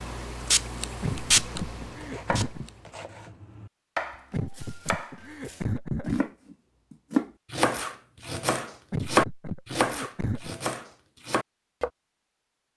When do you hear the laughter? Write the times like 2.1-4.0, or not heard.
1.0-2.7, 4.3-6.2, 8.9-10.6.